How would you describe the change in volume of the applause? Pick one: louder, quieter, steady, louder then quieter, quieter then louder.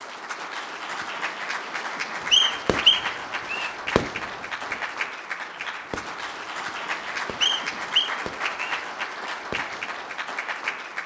steady.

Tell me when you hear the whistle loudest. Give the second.
3 s.